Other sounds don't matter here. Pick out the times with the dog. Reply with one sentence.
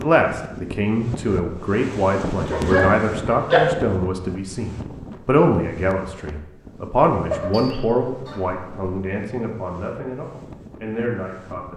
You can hear the dog from 2.5 to 3.6 s and from 7.3 to 8.7 s.